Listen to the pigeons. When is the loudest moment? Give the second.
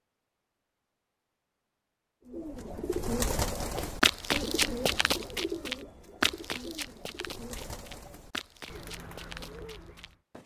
3 s.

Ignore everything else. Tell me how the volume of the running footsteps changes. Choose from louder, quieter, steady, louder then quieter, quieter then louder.
quieter.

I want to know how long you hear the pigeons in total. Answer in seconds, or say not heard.
8 s.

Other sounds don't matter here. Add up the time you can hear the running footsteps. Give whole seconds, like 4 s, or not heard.
7 s.